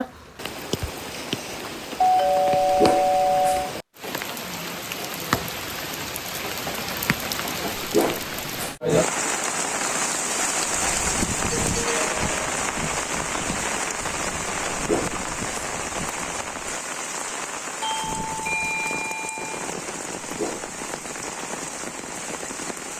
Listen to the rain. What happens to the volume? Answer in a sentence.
The volume of the rain goes up, then down.